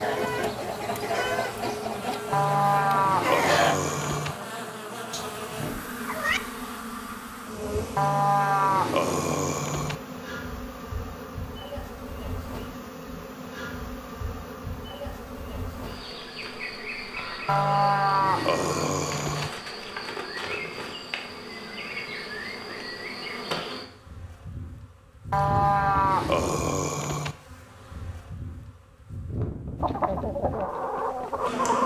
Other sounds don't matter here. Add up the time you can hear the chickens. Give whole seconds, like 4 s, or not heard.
6 s.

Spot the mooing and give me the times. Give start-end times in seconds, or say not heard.
2.3-4.3, 8.0-9.9, 17.4-19.5, 25.3-27.4.